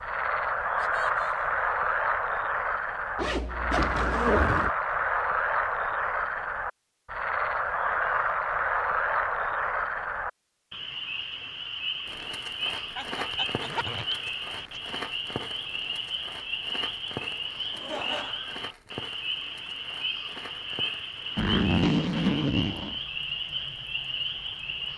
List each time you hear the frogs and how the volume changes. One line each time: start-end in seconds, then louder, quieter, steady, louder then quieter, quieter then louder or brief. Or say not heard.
0.0-24.9 quieter.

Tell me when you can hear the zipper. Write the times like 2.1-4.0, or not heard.
3.1-4.7, 13.3-14.8, 21.4-22.9.